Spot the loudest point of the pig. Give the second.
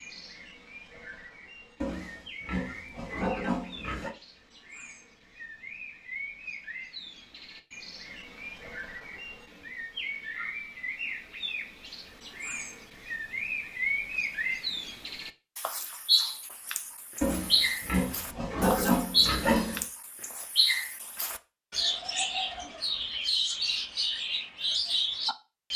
19 s.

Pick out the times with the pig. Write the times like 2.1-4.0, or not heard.
1.8-4.1, 17.2-19.9.